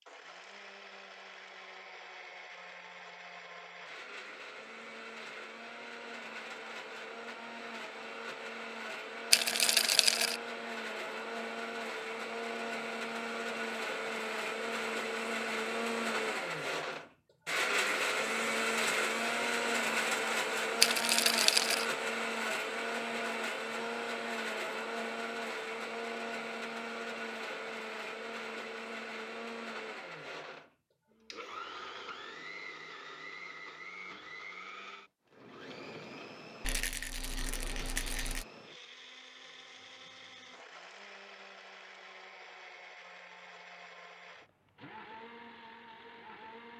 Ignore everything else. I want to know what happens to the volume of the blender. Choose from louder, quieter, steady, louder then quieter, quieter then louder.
louder then quieter.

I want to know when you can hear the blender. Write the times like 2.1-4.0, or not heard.
0.0-46.7.